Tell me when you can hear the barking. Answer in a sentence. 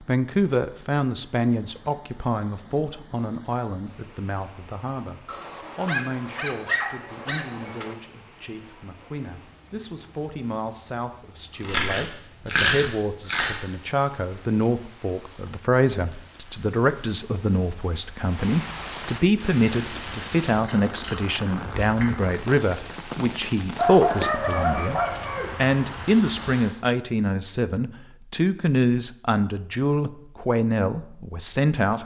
The barking can be heard from 5.2 to 8.0 s and from 23.8 to 25.6 s.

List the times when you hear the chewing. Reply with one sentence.
You can hear the chewing from 11.6 to 13.6 s and from 20.6 to 22.3 s.